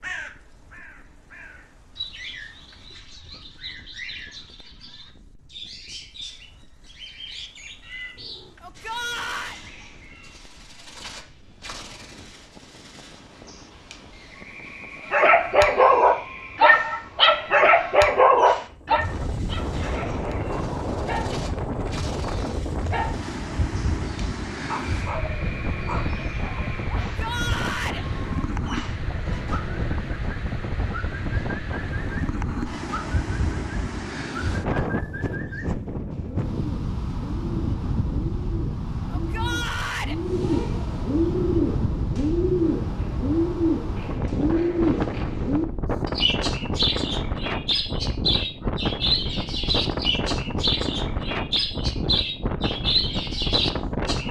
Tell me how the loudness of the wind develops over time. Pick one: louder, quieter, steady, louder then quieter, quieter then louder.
louder.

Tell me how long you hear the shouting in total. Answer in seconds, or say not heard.
3 s.